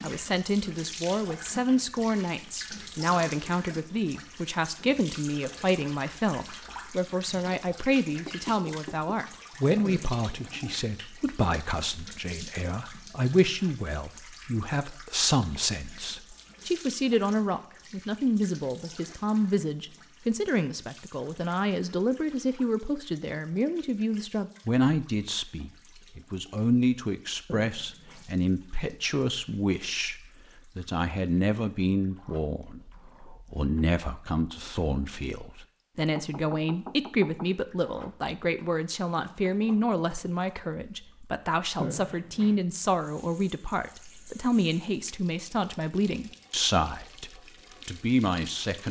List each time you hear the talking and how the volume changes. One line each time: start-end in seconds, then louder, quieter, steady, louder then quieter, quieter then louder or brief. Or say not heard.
0.0-48.8 steady.